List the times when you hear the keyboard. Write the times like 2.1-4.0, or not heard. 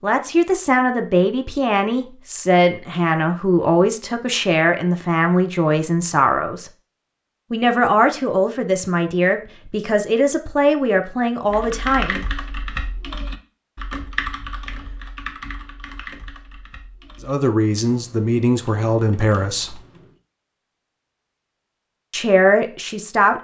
11.4-20.2.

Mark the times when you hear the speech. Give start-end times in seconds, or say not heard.
0.0-6.7, 7.5-12.2, 17.2-19.8, 22.1-23.3.